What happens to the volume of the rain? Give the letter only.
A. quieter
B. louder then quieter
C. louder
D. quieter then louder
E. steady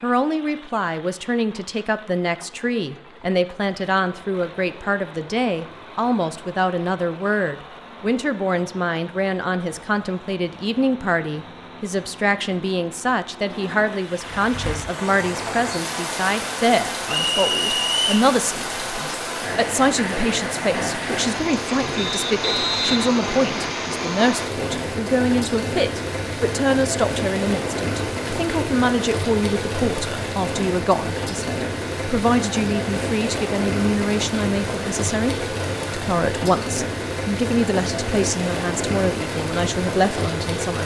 E.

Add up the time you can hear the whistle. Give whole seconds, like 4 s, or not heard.
3 s.